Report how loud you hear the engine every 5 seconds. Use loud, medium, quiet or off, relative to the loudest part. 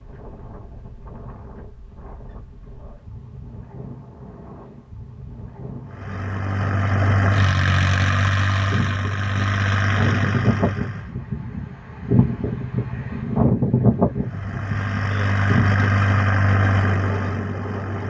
off, loud, medium, loud.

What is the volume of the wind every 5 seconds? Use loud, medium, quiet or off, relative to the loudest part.
quiet, medium, loud, medium.